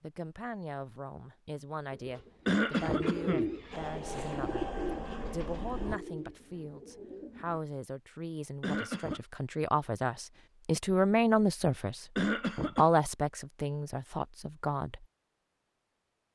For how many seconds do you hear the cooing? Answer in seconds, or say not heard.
6 s.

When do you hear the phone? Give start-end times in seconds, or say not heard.
not heard.